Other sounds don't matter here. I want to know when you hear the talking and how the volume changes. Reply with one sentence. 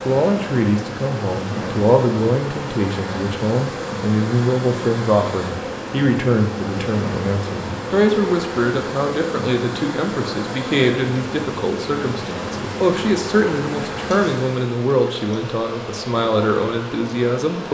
The talking can be heard from 0.1 to 17.6 s, at a steady volume.